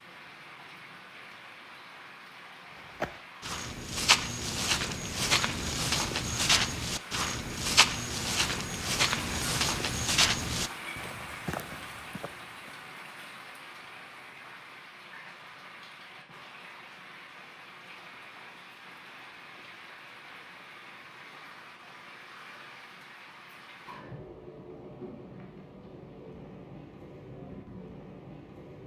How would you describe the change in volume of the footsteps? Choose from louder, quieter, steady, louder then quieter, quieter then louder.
quieter.